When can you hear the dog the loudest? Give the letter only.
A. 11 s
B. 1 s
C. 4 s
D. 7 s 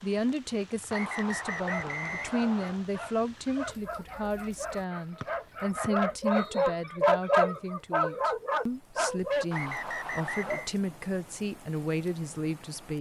D.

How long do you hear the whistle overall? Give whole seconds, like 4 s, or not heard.
5 s.